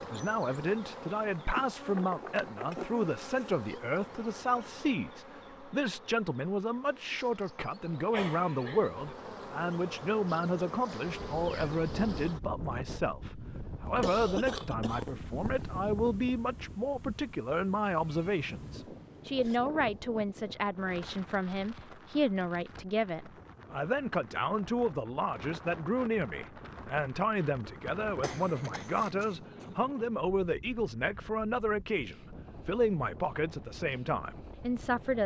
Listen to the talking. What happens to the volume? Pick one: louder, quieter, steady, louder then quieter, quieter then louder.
steady.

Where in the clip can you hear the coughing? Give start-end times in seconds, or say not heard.
8.1-9.2, 13.8-15.8, 28.2-29.6.